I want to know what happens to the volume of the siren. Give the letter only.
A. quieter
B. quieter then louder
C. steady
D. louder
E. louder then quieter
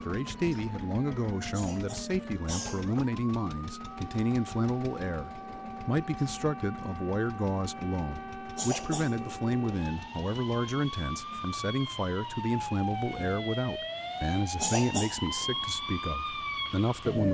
D.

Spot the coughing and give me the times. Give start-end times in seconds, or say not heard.
1.5-3.0, 8.6-9.2, 14.6-15.3.